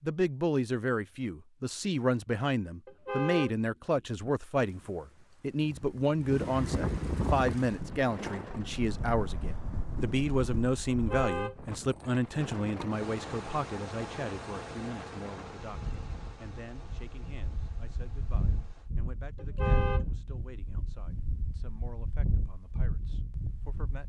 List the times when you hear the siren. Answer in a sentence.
You can't hear the siren here.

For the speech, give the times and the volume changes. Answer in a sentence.
The speech can be heard from 0.0 to 24.0 s, getting quieter.